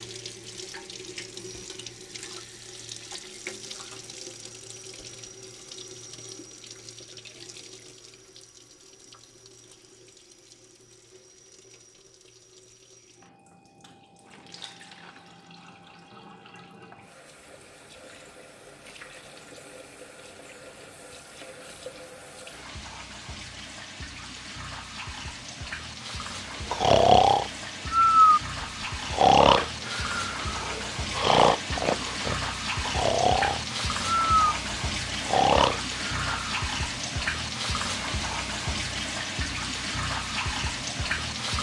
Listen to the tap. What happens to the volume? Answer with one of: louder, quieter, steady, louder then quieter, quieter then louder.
quieter then louder.